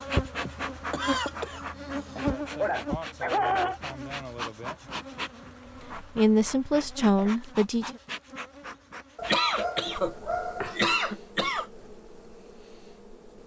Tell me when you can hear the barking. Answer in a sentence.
The barking can be heard from 2.1 to 3.8 s and from 9.2 to 10.8 s.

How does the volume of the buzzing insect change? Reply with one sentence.
The volume of the buzzing insect goes down.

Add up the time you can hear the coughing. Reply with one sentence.
You can hear the coughing for 5 seconds altogether.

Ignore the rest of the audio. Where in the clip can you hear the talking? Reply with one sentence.
You can hear the talking from 6.0 to 8.0 s.